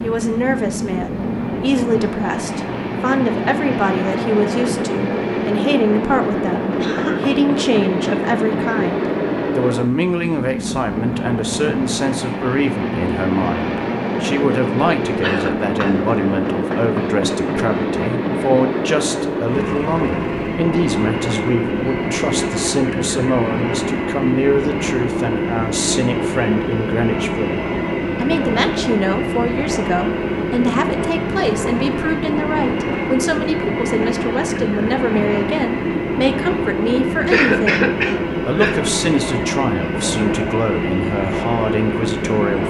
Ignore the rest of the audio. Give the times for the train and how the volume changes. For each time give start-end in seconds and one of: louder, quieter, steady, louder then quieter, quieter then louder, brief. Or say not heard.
0.0-42.6 steady.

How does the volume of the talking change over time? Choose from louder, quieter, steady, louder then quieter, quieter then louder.
steady.